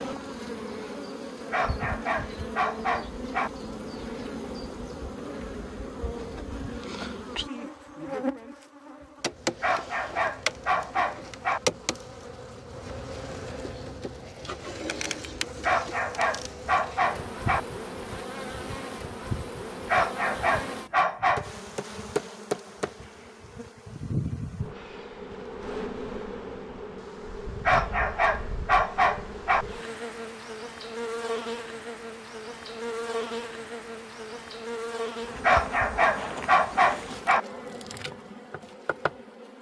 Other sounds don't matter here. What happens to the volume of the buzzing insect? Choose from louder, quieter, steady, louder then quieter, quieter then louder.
steady.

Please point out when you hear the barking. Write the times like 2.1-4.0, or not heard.
1.5-3.5, 9.6-11.6, 15.6-17.6, 19.9-21.5, 27.6-29.6, 35.4-37.4.